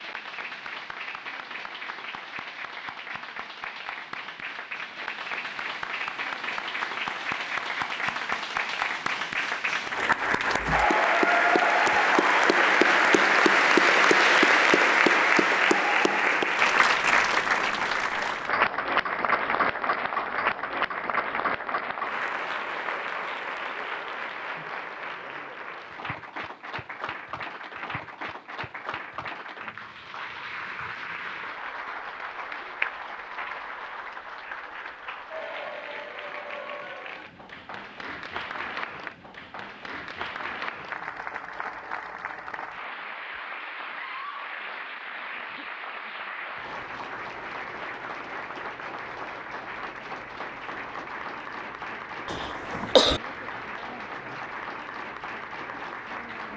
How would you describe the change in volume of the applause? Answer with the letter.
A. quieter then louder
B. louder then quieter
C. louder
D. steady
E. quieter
B.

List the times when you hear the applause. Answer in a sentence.
The applause can be heard from 0.0 to 56.5 s.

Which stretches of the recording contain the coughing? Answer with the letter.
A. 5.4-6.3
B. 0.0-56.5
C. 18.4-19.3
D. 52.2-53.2
D.